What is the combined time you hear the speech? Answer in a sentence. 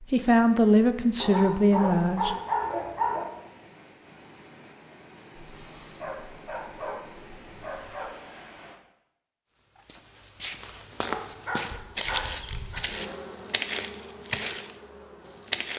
The speech can be heard for 2 seconds in total.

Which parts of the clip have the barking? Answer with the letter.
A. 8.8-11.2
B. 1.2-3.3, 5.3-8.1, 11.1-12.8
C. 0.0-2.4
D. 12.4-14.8
B.